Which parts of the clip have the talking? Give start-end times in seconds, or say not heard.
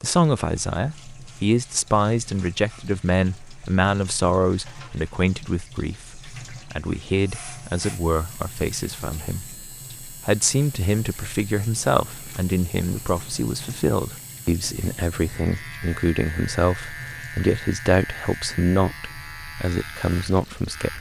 0.0-20.9.